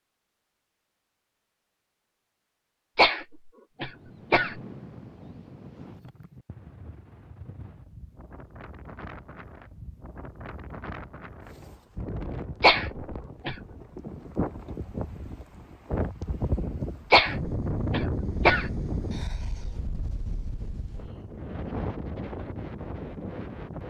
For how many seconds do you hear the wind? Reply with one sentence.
The wind can be heard for 20 seconds in total.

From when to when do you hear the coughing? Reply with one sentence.
The coughing can be heard from 3.0 to 4.5 s, from 12.6 to 13.6 s and from 17.1 to 18.7 s.